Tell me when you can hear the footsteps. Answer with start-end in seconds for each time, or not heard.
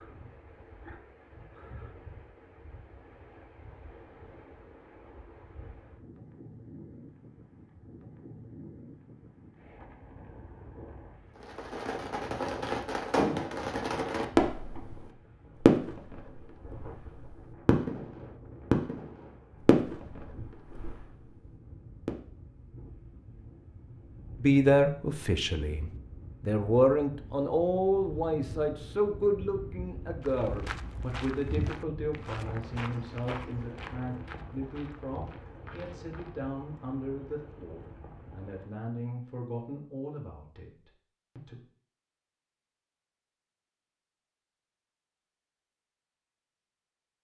30.2-36.4.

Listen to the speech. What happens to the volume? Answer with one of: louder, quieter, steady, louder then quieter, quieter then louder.
quieter.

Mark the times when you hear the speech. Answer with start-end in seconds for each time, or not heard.
24.4-41.6.